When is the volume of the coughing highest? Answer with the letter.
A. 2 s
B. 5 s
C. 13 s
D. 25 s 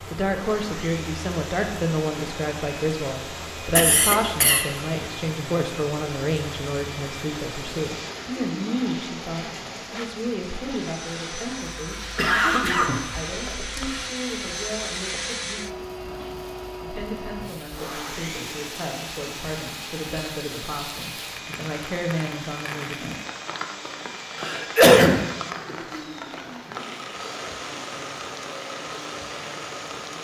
D.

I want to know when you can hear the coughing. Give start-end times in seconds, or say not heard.
3.8-4.7, 12.2-14.1, 24.4-25.2.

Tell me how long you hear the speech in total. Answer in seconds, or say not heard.
23 s.